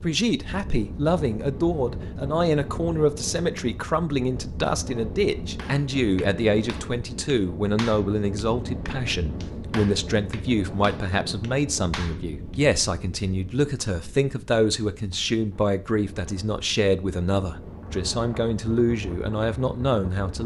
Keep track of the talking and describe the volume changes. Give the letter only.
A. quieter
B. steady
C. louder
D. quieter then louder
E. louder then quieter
B.